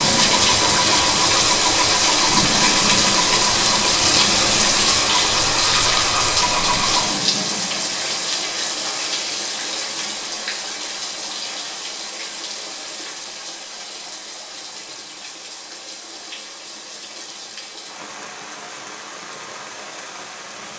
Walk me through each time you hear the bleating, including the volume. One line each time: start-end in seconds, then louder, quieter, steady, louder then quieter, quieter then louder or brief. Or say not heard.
not heard.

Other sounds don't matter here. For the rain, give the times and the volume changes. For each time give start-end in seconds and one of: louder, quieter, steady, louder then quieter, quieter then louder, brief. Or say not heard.
0.0-20.7 quieter.